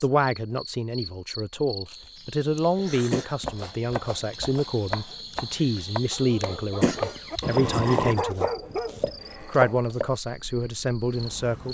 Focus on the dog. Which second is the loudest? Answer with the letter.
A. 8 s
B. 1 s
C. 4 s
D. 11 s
A.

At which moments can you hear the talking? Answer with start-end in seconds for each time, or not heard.
0.0-11.6.